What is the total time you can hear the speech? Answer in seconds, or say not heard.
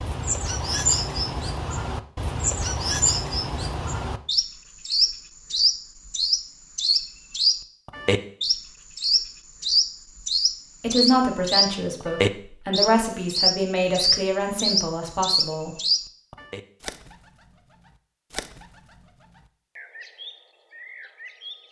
5 s.